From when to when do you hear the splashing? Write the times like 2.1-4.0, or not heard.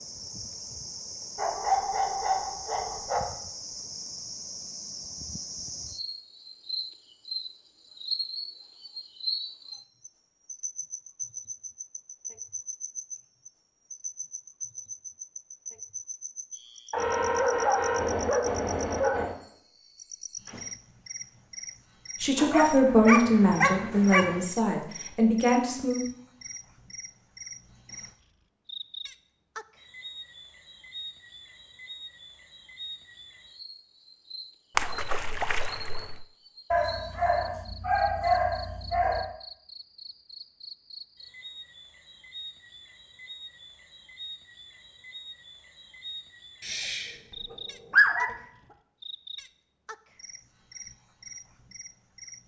34.8-36.2.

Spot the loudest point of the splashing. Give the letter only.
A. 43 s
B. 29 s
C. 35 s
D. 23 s
C.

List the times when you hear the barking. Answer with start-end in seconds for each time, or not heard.
1.4-3.3, 16.9-19.4, 22.4-24.4, 36.7-39.3, 46.6-48.3.